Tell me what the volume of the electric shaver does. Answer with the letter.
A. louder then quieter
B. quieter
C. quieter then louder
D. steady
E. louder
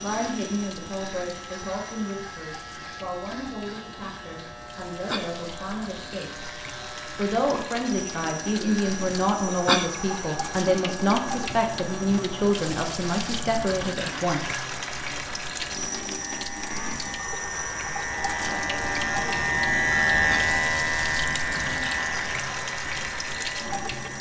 E.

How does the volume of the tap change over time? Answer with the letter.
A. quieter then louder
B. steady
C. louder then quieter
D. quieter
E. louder
E.